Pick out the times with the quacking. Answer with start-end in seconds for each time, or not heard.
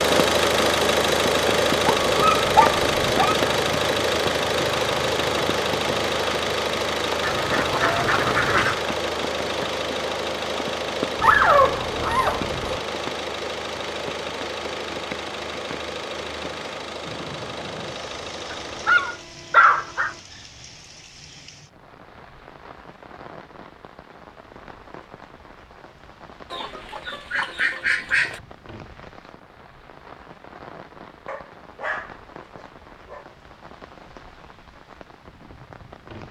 7.2-8.8, 26.5-28.4.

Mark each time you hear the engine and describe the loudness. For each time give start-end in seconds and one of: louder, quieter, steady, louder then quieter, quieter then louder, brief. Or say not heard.
0.0-19.2 quieter.